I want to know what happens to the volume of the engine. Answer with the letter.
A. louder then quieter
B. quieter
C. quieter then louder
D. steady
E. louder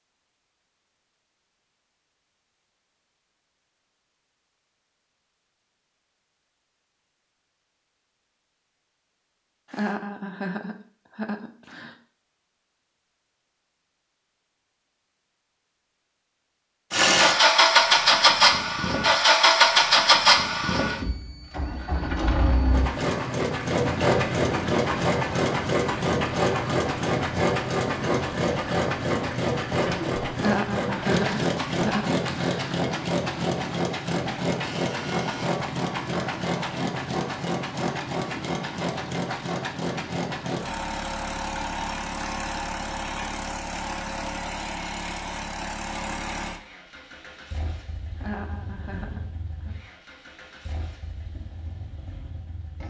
B.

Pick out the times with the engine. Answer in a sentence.
The engine can be heard from 16.9 to 52.8 s.